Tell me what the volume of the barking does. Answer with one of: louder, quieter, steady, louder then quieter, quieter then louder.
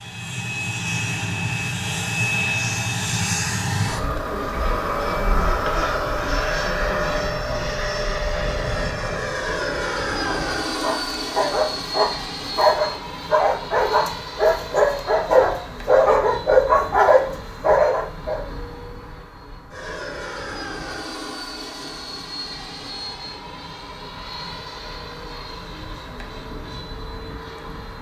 louder.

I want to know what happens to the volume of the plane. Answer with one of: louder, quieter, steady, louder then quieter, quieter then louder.
quieter.